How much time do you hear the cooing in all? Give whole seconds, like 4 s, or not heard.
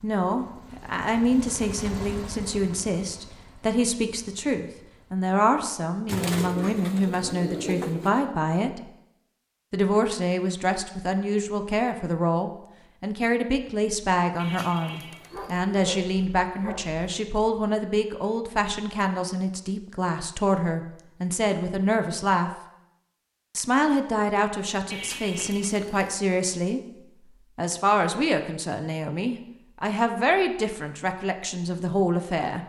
5 s.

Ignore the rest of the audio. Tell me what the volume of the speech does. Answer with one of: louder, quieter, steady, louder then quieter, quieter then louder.
steady.